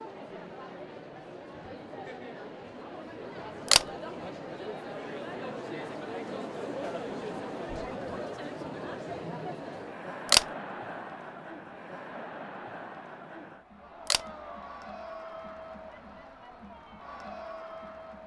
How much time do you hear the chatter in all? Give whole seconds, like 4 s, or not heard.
18 s.